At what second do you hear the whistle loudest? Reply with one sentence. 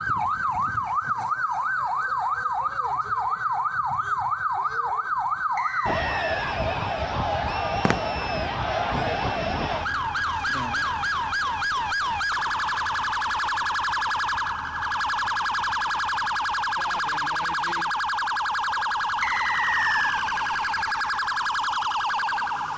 The volume of the whistle peaks at 20 seconds.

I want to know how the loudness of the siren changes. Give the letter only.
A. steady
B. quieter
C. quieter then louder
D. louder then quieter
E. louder
A.